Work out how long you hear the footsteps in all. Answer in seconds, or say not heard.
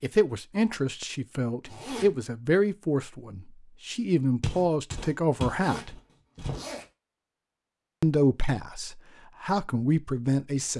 2 s.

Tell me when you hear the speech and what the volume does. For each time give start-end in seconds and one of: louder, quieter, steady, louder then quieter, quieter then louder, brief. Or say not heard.
0.0-6.0 steady
8.0-10.7 brief.